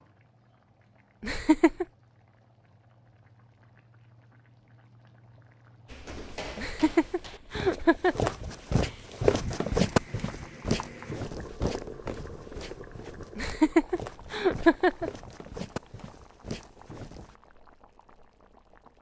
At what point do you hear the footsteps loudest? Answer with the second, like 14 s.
10 s.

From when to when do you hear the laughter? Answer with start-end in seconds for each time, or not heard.
1.2-1.9, 6.5-8.3, 13.3-15.1.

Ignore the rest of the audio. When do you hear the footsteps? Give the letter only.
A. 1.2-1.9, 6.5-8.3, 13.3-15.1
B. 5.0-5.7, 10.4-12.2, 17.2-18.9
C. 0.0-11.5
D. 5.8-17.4
D.